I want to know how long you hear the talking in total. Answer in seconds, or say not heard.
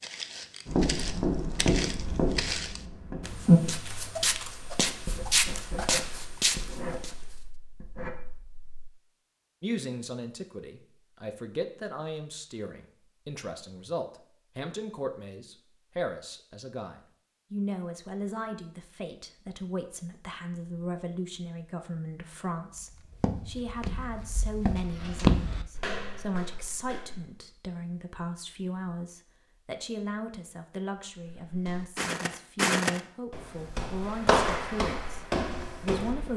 27 s.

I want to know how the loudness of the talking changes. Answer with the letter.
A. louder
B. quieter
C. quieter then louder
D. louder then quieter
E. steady
E.